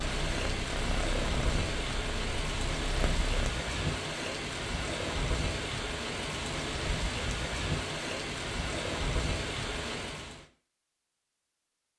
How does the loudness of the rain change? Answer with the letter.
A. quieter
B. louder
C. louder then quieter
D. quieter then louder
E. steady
E.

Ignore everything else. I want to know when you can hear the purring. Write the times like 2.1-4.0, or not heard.
0.0-3.5.